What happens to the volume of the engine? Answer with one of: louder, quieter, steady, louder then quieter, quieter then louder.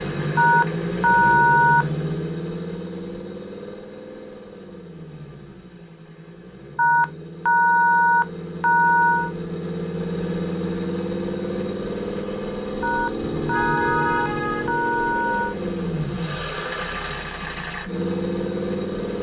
quieter then louder.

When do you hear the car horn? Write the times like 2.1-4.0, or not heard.
13.2-14.8.